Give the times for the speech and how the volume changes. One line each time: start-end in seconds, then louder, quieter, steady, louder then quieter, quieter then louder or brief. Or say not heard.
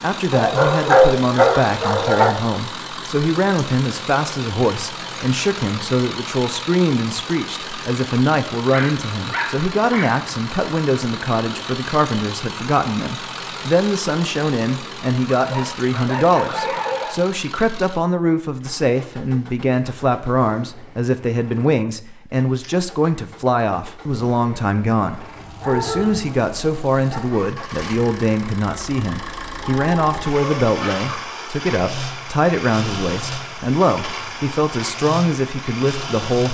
0.0-36.4 steady.